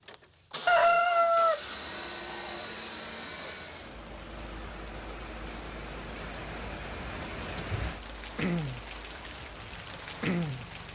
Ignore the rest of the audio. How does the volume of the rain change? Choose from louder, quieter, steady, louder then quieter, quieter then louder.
louder.